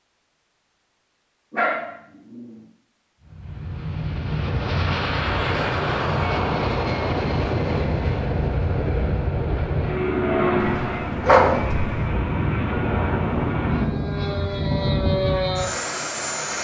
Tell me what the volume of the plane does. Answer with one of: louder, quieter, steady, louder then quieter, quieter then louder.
steady.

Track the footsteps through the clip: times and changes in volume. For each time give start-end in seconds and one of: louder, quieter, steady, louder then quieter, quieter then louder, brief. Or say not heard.
not heard.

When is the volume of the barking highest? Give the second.
11 s.